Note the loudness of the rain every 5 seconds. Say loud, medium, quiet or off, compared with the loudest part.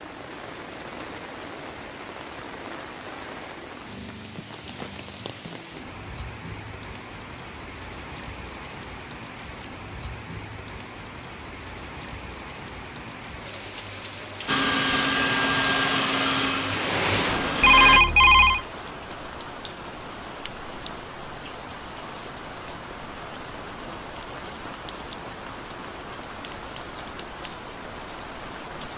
medium, medium, medium, loud, medium, medium.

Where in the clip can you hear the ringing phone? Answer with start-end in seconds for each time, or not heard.
17.6-18.6.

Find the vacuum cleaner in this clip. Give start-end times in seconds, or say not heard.
14.4-18.0.